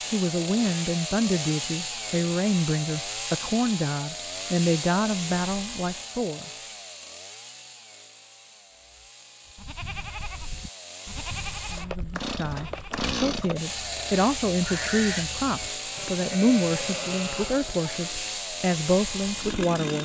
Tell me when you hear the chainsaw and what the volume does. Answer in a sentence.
You can hear the chainsaw from 0.0 to 20.0 s, getting quieter then louder.